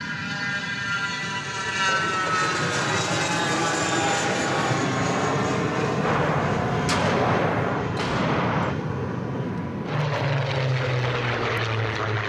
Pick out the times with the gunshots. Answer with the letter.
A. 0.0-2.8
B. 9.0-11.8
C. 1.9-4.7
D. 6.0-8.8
D.